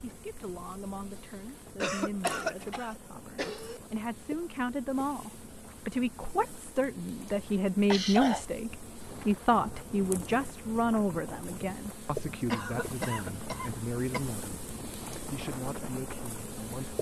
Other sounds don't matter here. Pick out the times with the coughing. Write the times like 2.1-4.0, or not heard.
1.8-3.8, 7.9-8.4, 12.5-14.2.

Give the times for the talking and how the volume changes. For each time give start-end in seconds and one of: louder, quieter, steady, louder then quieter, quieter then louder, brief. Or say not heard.
0.0-16.9 louder then quieter.